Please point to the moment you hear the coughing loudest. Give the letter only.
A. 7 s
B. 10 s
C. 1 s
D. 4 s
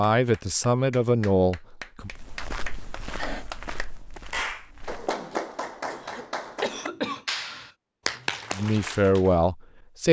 A.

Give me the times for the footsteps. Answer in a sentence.
You can hear the footsteps from 2.0 to 5.2 s.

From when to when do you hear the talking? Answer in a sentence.
You can hear the talking from 0.0 to 2.1 s and from 8.5 to 10.0 s.